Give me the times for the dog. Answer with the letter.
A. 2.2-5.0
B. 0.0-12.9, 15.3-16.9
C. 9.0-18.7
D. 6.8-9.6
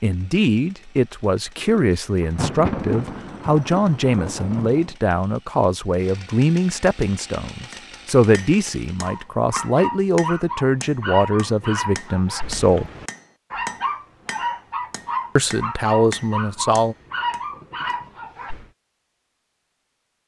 C.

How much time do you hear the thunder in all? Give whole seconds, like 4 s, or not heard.
3 s.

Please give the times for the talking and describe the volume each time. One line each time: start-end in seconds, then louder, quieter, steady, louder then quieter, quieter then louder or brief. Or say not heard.
0.0-12.9 steady
15.3-16.9 brief.